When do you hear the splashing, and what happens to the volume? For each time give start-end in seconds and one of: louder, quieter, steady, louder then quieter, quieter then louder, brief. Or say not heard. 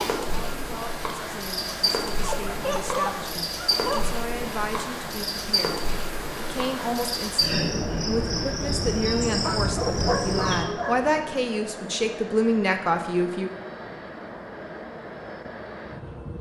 not heard.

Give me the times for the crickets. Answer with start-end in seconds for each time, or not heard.
0.0-10.7.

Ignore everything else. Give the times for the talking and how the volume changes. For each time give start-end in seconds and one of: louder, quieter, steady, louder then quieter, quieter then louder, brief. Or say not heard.
0.2-13.5 louder.